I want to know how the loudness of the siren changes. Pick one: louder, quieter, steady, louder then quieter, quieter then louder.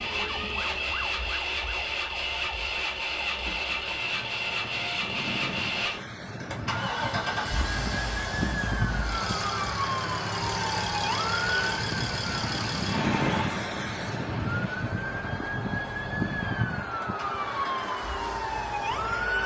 louder.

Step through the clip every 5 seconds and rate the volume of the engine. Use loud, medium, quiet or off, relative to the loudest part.
loud, loud, loud, quiet.